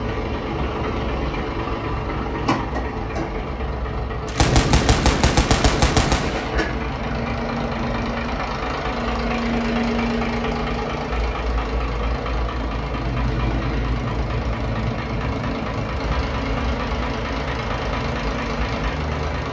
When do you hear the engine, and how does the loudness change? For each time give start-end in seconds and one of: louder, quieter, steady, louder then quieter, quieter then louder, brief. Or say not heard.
0.0-19.4 steady.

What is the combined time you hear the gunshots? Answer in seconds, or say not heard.
2 s.